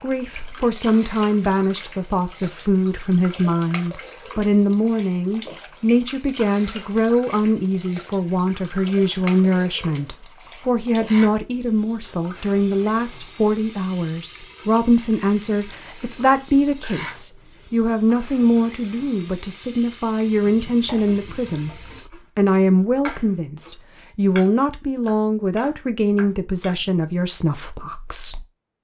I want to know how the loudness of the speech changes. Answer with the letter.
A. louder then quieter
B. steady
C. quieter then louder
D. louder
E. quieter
B.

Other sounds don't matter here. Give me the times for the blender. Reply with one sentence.
The blender can't be heard in this clip.